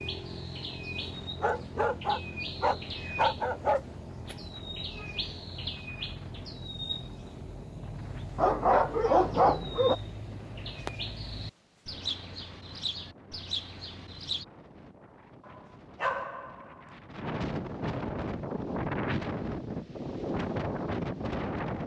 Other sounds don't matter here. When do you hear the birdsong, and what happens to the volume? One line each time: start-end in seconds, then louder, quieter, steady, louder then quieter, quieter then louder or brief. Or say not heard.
0.0-14.4 steady.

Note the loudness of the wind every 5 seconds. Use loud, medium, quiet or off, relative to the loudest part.
quiet, quiet, quiet, loud, loud.